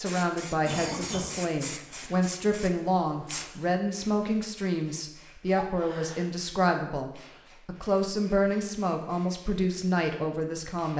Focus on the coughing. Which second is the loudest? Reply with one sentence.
The loudest moment of the coughing is at 1 second.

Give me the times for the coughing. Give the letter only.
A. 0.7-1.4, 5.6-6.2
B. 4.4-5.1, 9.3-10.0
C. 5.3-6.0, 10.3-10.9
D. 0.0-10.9
A.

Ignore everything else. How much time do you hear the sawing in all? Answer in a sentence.
You can't hear the sawing here.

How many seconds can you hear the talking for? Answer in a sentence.
The talking can be heard for 11 seconds in total.